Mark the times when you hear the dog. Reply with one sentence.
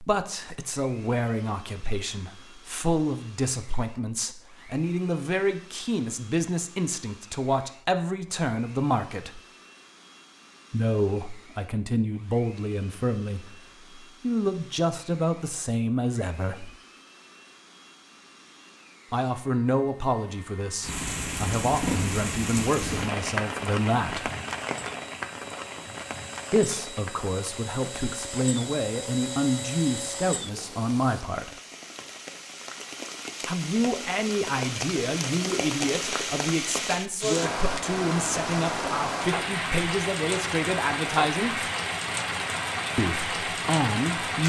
The dog can't be heard in this clip.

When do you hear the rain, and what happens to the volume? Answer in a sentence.
The rain can be heard from 20.8 to 44.4 s, getting quieter then louder.